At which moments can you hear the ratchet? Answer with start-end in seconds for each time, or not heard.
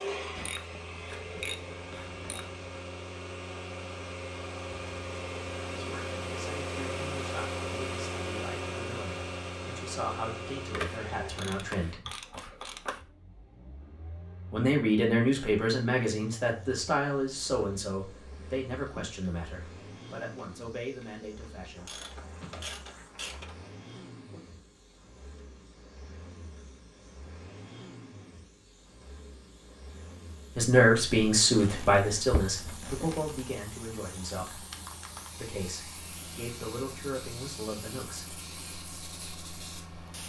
0.3-2.6, 10.7-13.1, 21.8-23.6, 31.6-33.5.